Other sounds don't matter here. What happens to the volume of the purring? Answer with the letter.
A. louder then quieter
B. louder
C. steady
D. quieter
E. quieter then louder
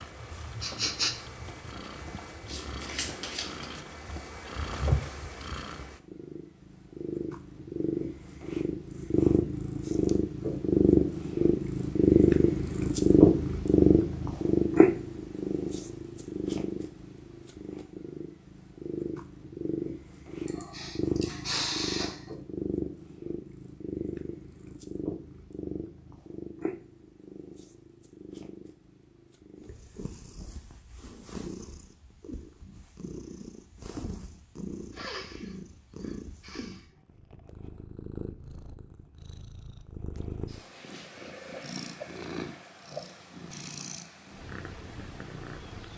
A.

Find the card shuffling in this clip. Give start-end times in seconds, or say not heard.
2.5-3.8.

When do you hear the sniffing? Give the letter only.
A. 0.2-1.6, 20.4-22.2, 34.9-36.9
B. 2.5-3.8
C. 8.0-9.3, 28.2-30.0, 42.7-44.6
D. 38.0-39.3
A.